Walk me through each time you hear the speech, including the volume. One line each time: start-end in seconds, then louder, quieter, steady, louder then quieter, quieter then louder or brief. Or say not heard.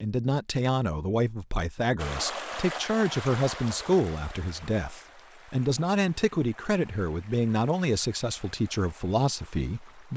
0.0-10.1 steady.